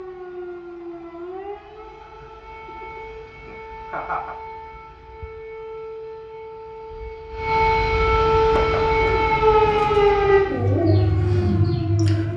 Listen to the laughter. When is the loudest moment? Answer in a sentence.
The volume of the laughter peaks at 4 seconds.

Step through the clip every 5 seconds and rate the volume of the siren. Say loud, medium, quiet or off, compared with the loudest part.
quiet, loud, loud.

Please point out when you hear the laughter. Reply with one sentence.
The laughter can be heard from 2.0 to 4.3 s.